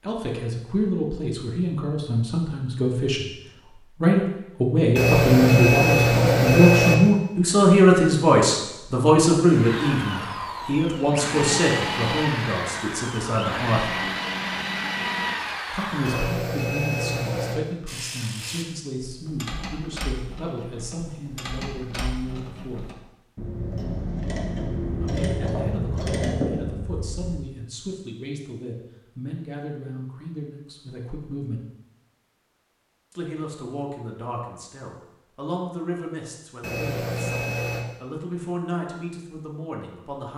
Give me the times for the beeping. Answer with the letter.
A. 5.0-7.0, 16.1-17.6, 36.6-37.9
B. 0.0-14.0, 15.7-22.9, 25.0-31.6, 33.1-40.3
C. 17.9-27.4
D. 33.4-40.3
A.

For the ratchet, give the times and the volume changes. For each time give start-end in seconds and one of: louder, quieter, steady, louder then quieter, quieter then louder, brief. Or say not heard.
17.9-27.4 louder.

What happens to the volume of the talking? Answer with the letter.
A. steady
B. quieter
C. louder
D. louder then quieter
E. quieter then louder
B.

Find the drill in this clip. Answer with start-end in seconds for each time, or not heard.
9.4-16.4.